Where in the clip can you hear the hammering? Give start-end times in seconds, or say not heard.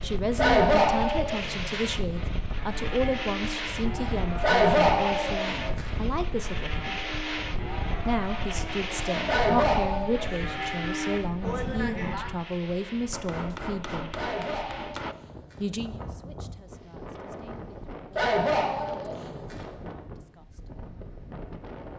13.1-15.2.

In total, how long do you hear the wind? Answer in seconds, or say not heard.
22 s.